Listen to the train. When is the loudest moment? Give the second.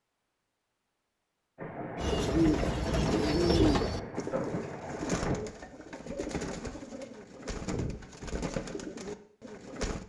5 s.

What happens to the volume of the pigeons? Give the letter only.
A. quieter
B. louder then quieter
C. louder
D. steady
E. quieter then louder
A.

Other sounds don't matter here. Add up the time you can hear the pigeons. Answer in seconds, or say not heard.
8 s.